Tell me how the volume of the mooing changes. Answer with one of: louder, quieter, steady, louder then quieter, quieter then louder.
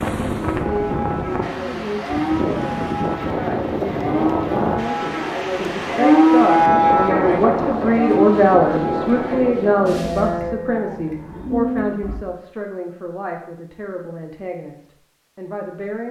louder then quieter.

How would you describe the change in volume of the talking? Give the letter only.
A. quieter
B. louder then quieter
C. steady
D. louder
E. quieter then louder
B.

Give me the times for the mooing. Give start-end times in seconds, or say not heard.
0.3-12.2.